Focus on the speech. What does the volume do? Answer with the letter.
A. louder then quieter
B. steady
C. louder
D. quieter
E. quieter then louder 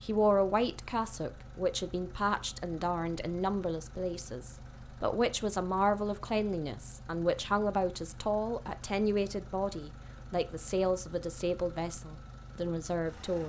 B.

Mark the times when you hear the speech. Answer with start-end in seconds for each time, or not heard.
0.0-13.4.